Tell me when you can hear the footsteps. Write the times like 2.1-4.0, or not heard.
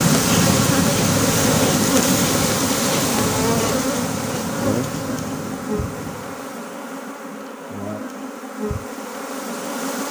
not heard.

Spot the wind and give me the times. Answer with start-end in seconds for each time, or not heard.
0.0-6.6.